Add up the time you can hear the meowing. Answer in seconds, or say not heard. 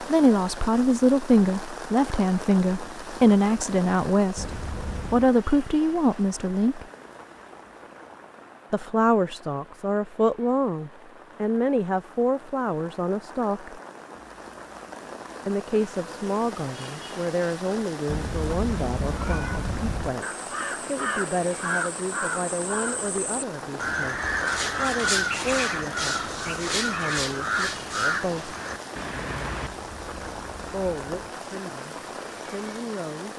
5 s.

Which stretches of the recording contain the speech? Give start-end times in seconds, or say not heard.
0.1-6.8, 8.7-13.8, 15.4-28.6, 30.7-33.3.